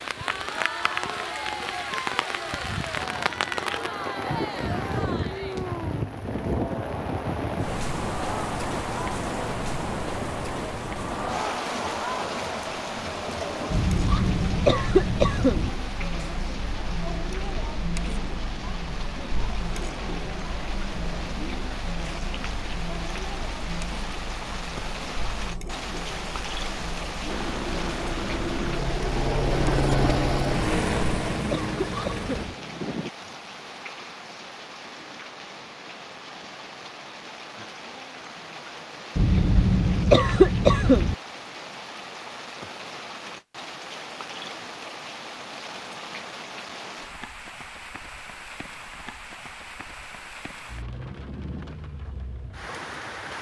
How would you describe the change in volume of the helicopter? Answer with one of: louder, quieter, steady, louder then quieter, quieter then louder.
louder then quieter.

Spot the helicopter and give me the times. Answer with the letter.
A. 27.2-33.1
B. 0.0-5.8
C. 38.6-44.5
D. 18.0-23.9
A.